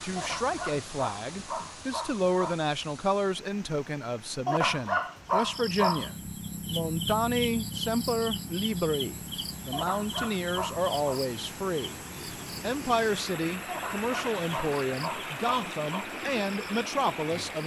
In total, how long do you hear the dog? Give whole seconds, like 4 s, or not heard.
8 s.